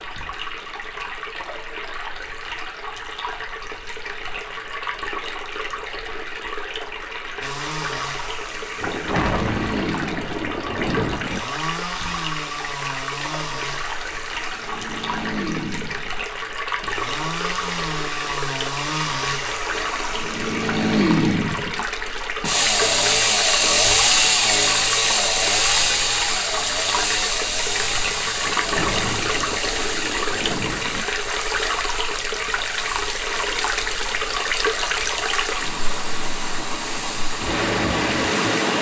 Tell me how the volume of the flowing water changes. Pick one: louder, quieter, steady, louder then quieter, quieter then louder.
louder.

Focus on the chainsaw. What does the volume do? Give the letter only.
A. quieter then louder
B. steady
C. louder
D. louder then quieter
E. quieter
D.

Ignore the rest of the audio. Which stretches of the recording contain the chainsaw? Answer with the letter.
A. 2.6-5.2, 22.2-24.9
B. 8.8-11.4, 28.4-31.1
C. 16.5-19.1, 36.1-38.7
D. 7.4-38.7
D.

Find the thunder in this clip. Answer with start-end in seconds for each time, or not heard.
8.8-11.4, 28.4-31.1.